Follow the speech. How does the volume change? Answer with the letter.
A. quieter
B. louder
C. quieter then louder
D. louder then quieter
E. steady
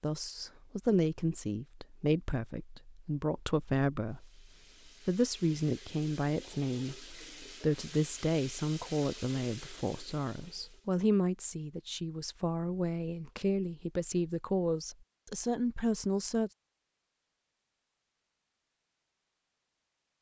E.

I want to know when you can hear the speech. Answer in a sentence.
You can hear the speech from 0.0 to 4.4 s and from 5.0 to 16.5 s.